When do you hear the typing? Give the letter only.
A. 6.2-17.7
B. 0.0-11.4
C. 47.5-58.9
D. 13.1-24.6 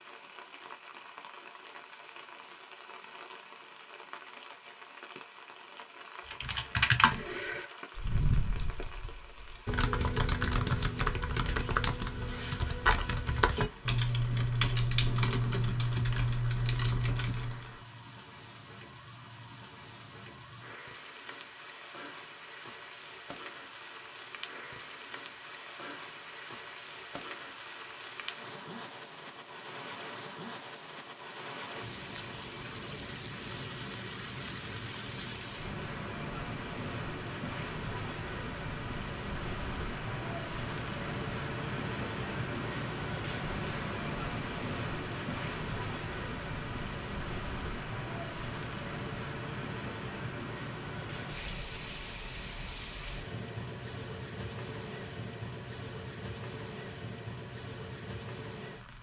A.